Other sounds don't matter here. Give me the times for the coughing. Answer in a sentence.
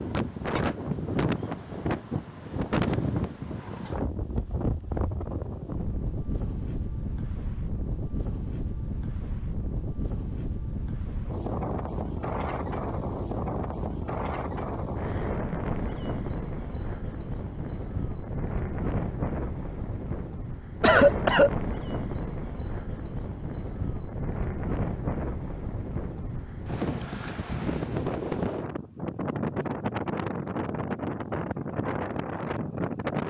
You can hear the coughing from 20.8 to 21.5 s.